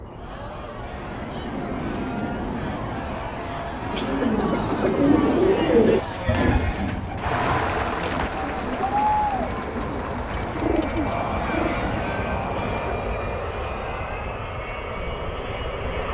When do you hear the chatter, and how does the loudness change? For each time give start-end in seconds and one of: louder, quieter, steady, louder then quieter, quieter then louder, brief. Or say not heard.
0.0-16.0 louder then quieter.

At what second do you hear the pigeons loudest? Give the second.
6 s.